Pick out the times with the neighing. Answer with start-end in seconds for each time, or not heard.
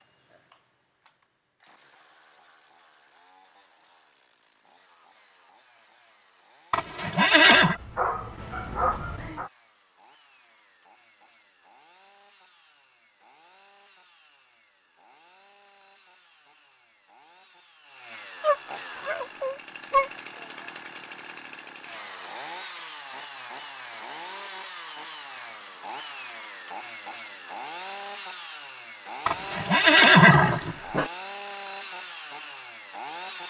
6.7-7.8, 29.2-30.8.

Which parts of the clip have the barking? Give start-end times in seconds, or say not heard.
7.5-9.5, 18.4-20.1, 30.3-31.1.